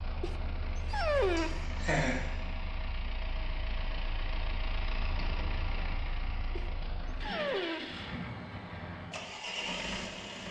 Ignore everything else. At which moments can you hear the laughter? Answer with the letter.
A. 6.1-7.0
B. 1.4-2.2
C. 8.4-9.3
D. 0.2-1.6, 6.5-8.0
B.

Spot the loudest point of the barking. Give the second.
1 s.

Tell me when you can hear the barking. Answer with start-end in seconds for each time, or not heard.
0.2-1.6, 6.5-8.0.